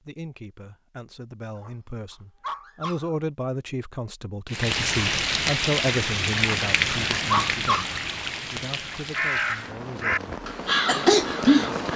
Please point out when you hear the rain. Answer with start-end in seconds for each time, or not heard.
4.5-11.9.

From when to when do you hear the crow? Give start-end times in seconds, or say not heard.
9.1-11.9.